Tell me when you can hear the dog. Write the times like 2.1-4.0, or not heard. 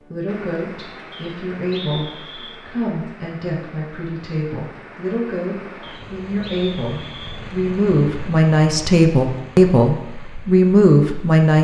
not heard.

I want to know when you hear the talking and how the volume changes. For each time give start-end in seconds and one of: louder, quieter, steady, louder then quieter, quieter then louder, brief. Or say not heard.
0.0-11.5 louder.